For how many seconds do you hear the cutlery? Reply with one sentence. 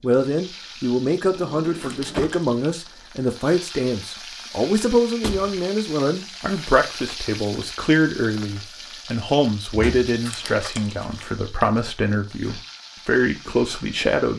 You can't hear the cutlery here.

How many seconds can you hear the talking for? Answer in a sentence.
You can hear the talking for 14 seconds altogether.